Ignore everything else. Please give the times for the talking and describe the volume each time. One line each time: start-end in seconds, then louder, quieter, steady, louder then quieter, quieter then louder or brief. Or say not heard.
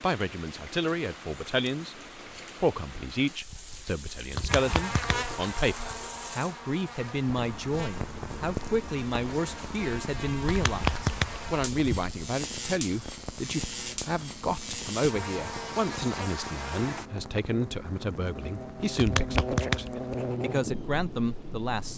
0.0-1.9 brief
2.6-21.9 steady.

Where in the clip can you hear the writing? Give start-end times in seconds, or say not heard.
not heard.